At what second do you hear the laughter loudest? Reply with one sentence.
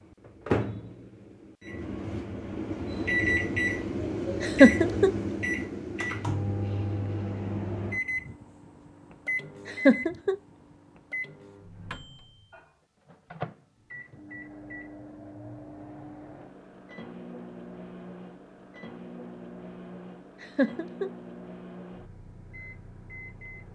The volume of the laughter peaks at 5 seconds.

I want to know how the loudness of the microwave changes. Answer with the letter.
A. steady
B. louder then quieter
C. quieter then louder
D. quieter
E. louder
D.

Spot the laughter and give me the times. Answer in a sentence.
You can hear the laughter from 4.4 to 5.1 s, from 9.7 to 10.3 s and from 20.4 to 21.1 s.